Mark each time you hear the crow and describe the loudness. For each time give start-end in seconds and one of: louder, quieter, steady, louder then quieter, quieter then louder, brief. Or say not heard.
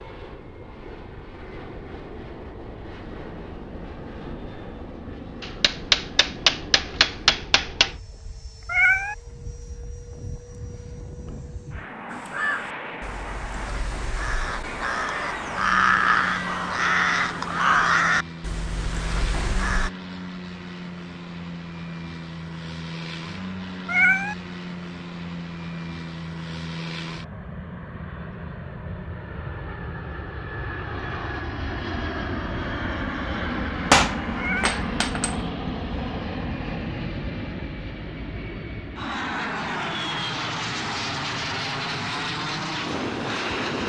12.1-19.9 louder then quieter.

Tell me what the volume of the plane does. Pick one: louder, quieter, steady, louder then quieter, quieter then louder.
louder.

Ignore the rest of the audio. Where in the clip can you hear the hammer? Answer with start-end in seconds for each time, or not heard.
5.4-8.0, 33.9-35.4.